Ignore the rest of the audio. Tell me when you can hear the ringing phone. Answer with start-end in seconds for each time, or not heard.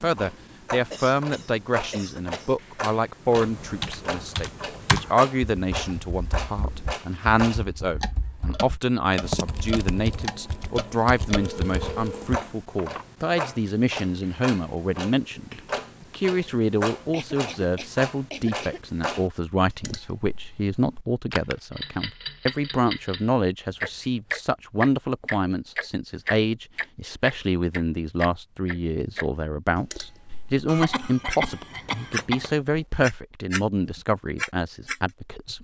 11.3-12.3.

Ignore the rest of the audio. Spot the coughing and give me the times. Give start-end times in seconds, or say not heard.
0.9-2.5, 17.1-18.8, 30.6-32.5.